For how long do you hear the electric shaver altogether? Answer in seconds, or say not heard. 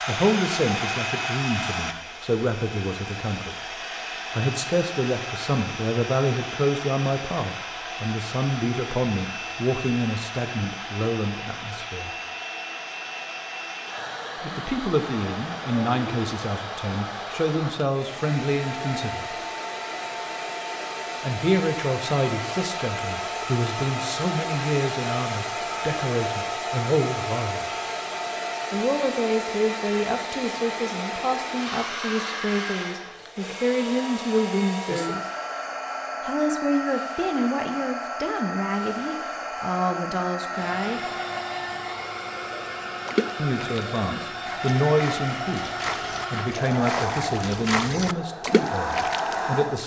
not heard.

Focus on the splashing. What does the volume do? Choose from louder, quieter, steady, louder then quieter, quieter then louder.
louder.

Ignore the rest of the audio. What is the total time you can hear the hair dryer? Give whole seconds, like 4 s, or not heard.
50 s.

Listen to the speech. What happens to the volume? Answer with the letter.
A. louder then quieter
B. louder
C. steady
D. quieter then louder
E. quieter
C.